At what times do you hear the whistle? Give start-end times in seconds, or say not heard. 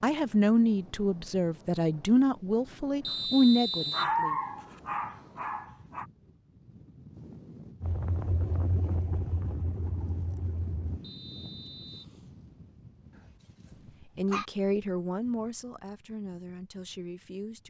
3.0-4.2, 11.0-12.2.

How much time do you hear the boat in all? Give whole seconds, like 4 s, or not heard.
3 s.